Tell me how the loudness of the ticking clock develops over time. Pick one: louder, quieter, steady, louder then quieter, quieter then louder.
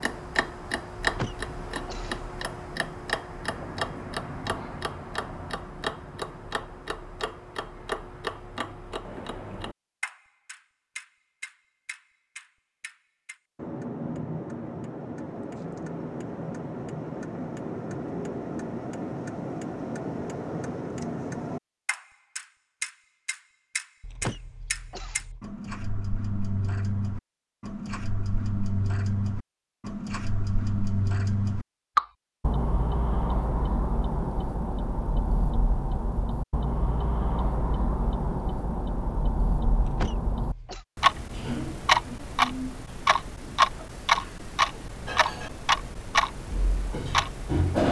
louder.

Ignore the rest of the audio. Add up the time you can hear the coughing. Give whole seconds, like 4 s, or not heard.
4 s.